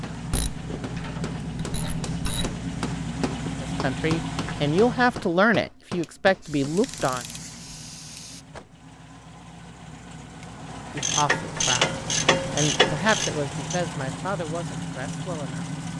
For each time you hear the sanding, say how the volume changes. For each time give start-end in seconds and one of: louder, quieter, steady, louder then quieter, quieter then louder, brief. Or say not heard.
not heard.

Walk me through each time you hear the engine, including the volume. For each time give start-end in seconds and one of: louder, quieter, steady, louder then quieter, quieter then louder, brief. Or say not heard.
0.0-5.4 steady
6.7-15.9 louder.